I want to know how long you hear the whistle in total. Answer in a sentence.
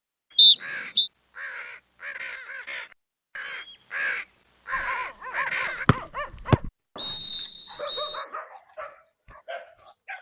You can hear the whistle for 3 seconds altogether.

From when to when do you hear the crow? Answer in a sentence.
You can hear the crow from 0.3 to 5.8 s.